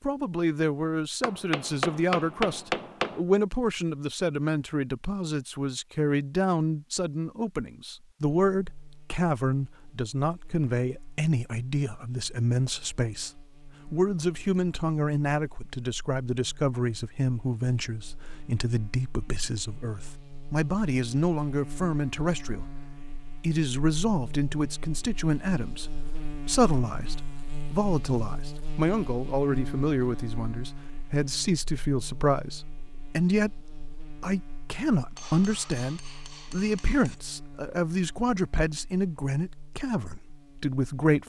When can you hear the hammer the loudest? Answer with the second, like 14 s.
3 s.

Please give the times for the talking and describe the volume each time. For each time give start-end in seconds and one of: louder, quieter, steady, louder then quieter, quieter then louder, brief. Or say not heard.
0.0-41.2 steady.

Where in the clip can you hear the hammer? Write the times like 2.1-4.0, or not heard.
1.2-3.2, 35.1-37.1.